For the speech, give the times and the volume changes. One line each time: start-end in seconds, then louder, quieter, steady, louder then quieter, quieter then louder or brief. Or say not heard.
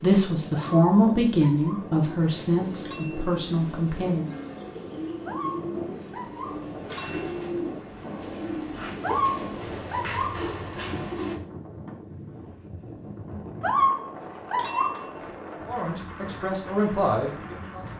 0.0-4.3 quieter
15.7-17.9 brief.